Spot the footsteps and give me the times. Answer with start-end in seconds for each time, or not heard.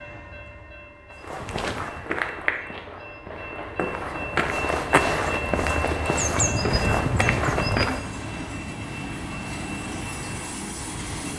1.2-8.0.